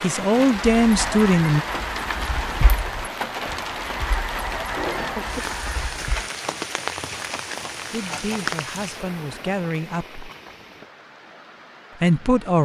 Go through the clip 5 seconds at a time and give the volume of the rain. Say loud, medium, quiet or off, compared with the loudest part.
loud, loud, quiet.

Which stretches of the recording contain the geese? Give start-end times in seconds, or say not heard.
0.8-6.2.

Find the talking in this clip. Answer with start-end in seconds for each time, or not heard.
0.0-1.6, 7.9-10.2, 12.0-12.6.